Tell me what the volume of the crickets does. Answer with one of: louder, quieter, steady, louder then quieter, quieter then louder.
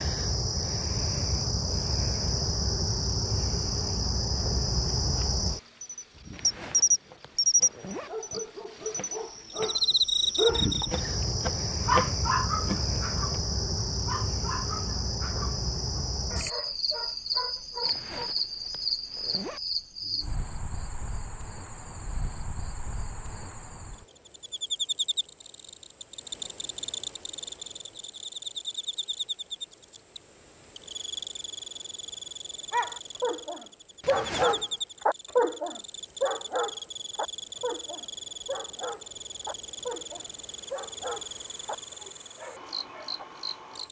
quieter.